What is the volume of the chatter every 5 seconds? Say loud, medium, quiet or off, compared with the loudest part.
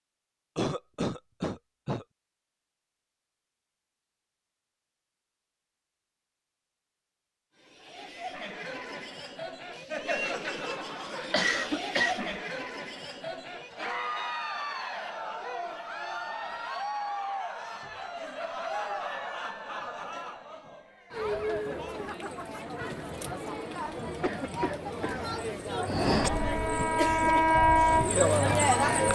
off, medium, medium, medium, medium, loud.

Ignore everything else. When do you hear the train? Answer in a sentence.
The train can be heard from 25.9 to 29.0 s.